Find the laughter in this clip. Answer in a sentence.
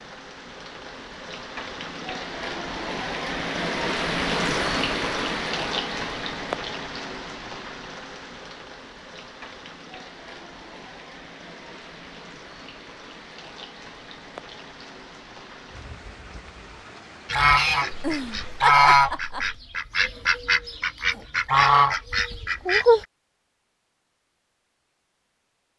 The laughter can be heard from 17.9 to 19.6 s.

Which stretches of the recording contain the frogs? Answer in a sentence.
The frogs can't be heard in this clip.